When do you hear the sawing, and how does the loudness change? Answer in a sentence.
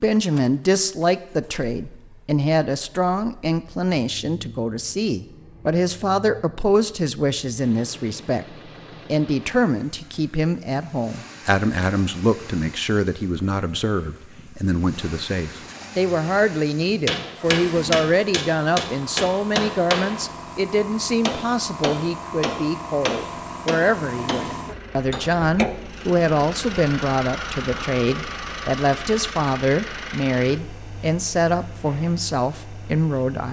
You can't hear the sawing here.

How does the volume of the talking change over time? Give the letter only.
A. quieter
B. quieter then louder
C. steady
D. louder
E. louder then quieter
C.